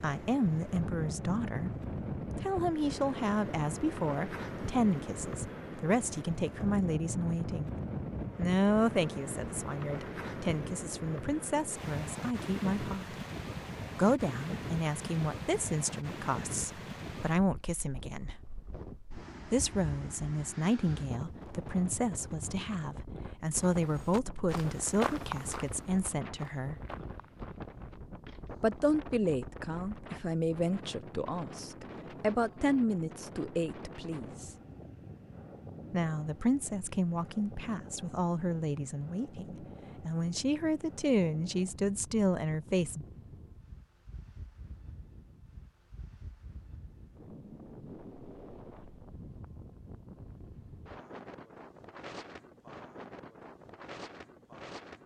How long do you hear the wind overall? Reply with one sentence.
You can hear the wind for 55 seconds altogether.